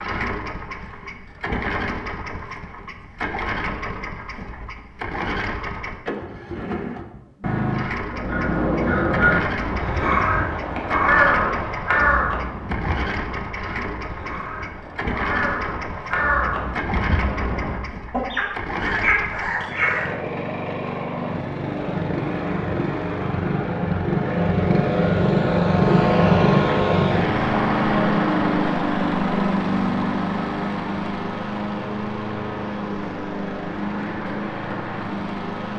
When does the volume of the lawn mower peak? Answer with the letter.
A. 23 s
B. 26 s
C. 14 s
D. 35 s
B.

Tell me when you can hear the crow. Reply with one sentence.
You can hear the crow from 8.1 to 20.1 s.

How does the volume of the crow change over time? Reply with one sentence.
The volume of the crow goes down, then up.